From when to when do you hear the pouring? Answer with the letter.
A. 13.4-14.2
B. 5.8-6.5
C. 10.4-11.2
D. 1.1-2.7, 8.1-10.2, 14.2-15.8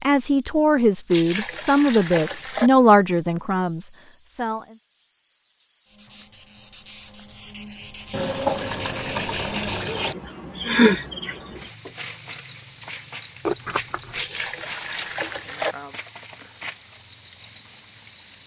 D.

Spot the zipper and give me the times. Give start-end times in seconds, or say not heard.
13.4-14.2.